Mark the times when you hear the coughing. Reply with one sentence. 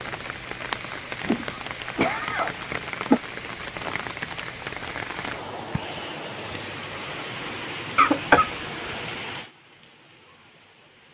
You can hear the coughing from 1.2 to 3.2 s and from 8.0 to 9.1 s.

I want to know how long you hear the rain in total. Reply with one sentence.
The rain can be heard for 11 seconds in total.